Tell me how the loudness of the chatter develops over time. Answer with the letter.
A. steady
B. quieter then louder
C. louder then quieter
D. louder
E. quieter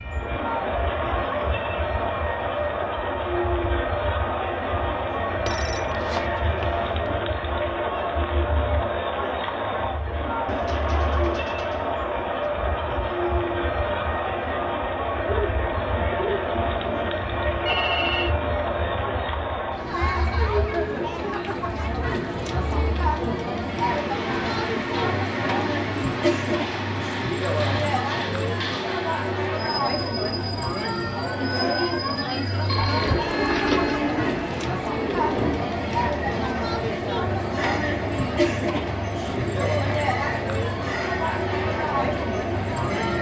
A.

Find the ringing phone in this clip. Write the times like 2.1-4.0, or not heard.
5.5-7.1, 17.6-18.4, 32.6-34.0.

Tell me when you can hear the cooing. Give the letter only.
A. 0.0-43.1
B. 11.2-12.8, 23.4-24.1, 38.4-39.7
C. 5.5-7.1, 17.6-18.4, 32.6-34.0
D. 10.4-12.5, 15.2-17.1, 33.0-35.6
D.